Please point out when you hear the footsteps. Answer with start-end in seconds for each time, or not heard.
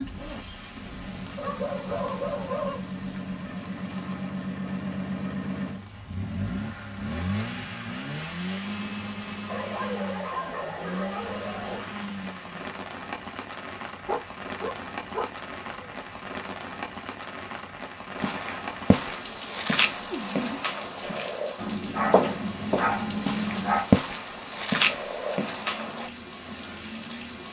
18.1-26.1.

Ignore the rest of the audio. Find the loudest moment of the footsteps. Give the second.
24 s.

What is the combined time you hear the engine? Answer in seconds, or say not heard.
13 s.